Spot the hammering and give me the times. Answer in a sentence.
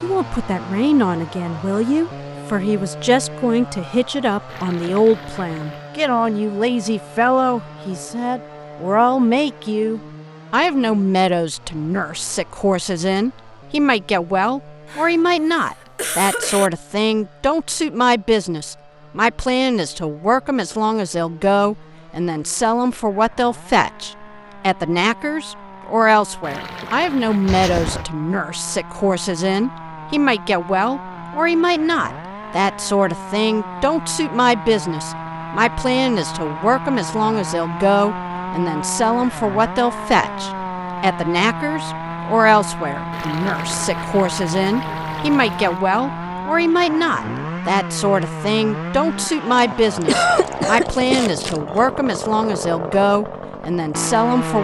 The hammering can't be heard in this clip.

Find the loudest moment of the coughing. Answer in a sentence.
The volume of the coughing peaks at 50 seconds.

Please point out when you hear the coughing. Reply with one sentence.
You can hear the coughing from 14.8 to 16.7 s, from 27.4 to 28.1 s and from 50.0 to 51.8 s.